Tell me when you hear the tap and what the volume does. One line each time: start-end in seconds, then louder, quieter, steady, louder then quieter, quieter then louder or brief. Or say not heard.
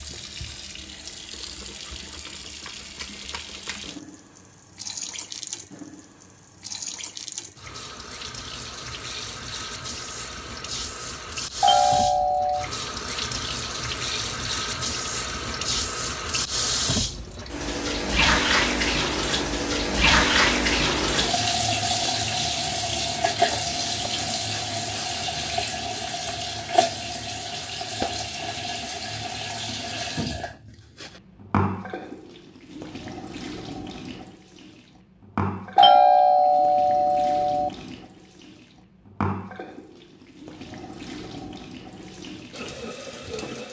0.0-43.6 louder then quieter.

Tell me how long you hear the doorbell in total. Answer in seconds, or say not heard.
3 s.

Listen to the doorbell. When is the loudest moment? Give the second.
36 s.